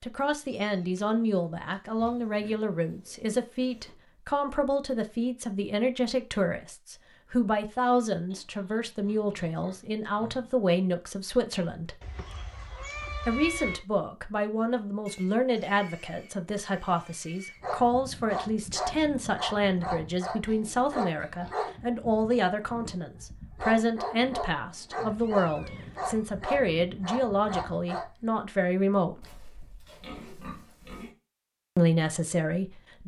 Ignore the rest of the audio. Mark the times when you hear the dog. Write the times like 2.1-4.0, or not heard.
17.6-28.1.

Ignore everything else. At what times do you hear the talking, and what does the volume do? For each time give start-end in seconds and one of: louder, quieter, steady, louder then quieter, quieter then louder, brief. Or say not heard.
0.0-11.9 steady
13.2-29.2 steady
31.8-33.0 brief.